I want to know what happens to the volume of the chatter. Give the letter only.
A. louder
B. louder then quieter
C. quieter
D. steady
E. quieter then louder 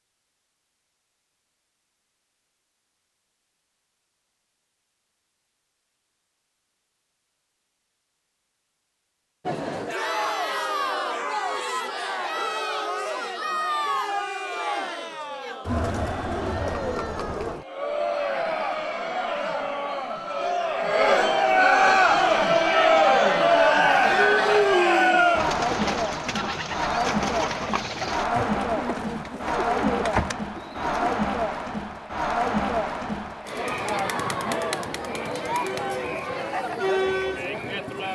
B.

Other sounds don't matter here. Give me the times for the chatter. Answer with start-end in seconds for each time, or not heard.
9.4-38.0.